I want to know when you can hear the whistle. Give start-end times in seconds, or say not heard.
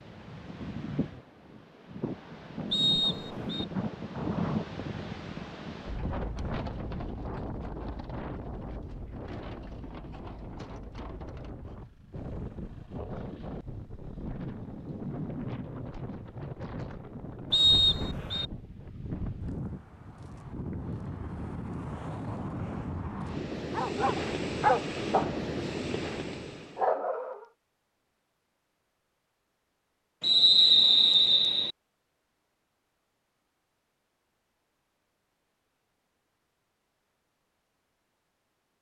2.7-3.6, 17.5-18.4, 30.2-31.7.